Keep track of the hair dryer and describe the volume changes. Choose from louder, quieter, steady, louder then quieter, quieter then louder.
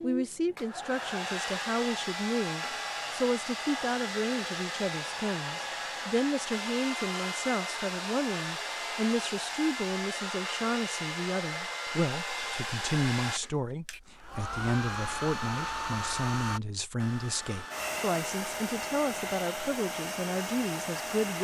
steady.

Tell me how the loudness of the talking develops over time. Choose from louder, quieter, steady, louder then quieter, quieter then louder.
steady.